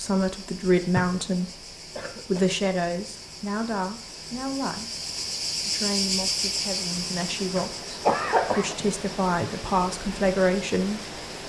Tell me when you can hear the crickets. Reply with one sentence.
The crickets can be heard from 0.0 to 11.4 s.